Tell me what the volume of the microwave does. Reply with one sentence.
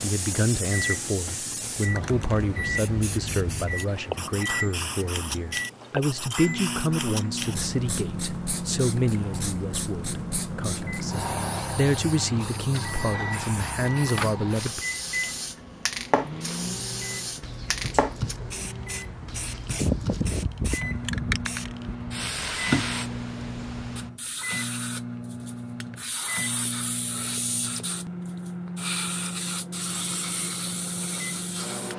The loudness of the microwave stays about the same.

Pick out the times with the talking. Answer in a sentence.
You can hear the talking from 0.0 to 14.8 s.